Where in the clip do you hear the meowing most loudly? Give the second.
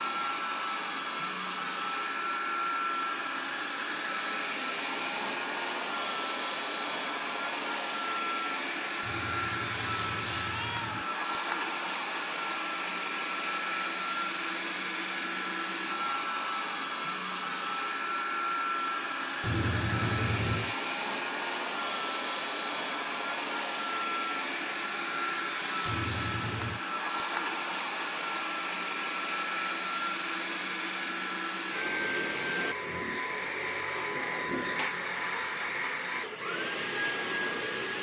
20 s.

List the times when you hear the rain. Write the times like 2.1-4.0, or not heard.
not heard.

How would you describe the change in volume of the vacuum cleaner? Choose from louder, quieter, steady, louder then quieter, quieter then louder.
steady.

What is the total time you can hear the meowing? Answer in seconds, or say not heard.
4 s.